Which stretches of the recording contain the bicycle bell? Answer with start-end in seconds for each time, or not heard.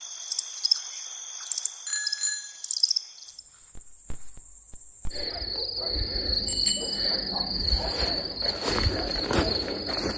1.9-2.5, 6.5-7.0.